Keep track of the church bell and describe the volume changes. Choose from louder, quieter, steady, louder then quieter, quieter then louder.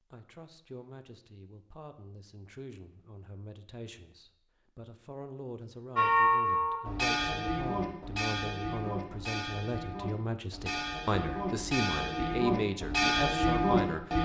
quieter then louder.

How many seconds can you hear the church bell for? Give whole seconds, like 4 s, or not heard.
8 s.